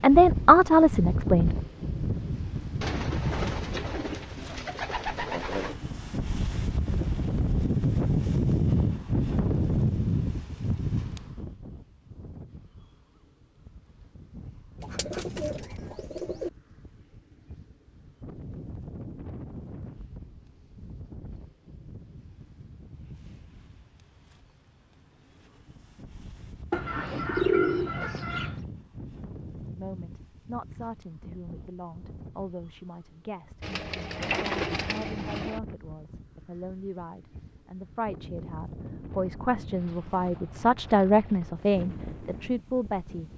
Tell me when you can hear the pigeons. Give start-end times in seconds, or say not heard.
2.8-5.8, 14.8-16.5, 26.7-28.6, 33.6-35.6.